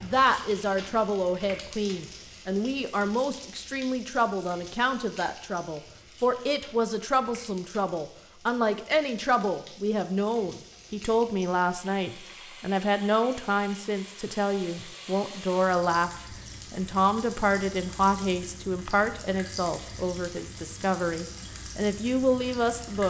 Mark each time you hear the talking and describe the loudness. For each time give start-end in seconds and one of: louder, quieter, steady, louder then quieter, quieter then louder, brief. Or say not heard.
0.0-23.0 steady.